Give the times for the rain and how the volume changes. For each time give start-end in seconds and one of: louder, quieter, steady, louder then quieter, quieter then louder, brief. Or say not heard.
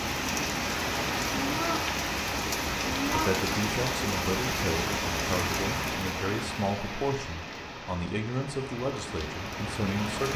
0.0-10.3 quieter.